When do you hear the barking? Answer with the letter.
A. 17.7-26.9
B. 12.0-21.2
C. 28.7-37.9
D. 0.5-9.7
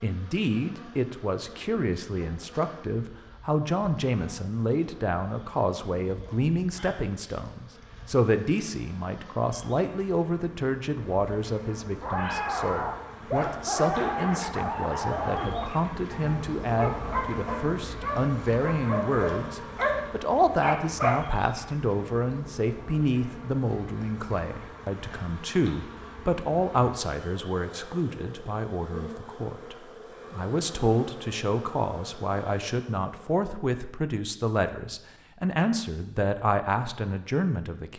B.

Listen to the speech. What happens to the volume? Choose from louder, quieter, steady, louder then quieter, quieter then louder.
steady.